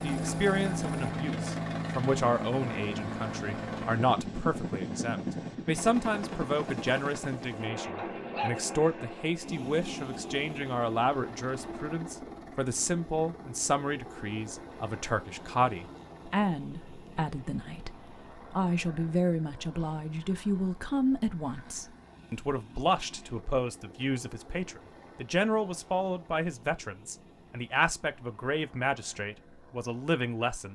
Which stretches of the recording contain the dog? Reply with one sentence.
You can hear the dog from 8.0 to 9.1 s.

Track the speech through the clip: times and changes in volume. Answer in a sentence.
You can hear the speech from 0.0 to 30.7 s, at a steady volume.